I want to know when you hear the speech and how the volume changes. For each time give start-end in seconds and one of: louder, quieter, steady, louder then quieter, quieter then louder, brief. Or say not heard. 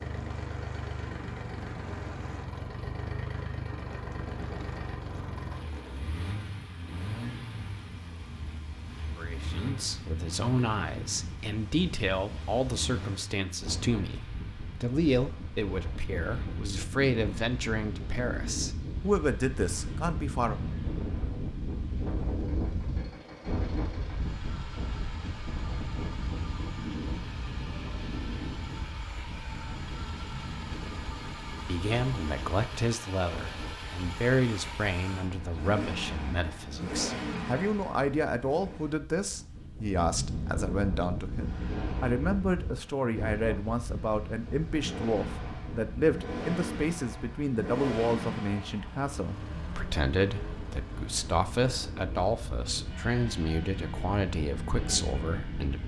9.2-20.6 steady
31.6-55.8 steady.